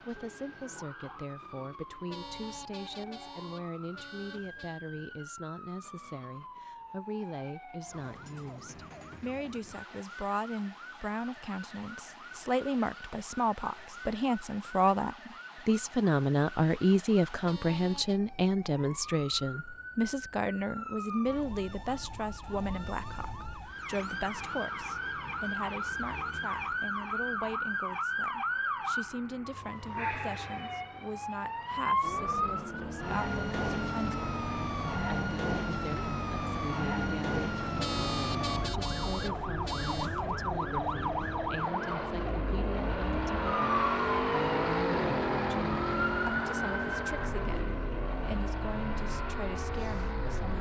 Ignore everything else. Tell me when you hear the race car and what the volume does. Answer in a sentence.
The race car can be heard from 32.0 to 50.5 s, getting louder then quieter.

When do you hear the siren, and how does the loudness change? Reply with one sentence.
The siren can be heard from 0.0 to 50.5 s, getting louder.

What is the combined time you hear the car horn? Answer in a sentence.
The car horn can be heard for 6 seconds in total.